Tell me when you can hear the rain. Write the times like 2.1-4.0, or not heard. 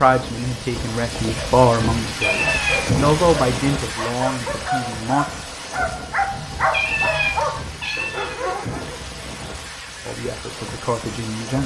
0.0-11.6.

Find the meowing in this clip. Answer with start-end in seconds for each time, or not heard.
2.0-3.0, 6.3-8.3.